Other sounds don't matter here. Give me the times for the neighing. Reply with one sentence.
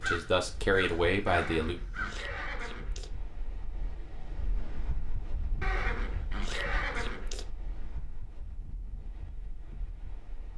You can hear the neighing from 1.2 to 3.1 s and from 5.6 to 7.5 s.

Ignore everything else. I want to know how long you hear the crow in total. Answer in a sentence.
The crow can be heard for 2 seconds in total.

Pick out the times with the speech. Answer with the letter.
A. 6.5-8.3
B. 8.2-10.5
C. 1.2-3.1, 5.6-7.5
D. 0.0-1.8
D.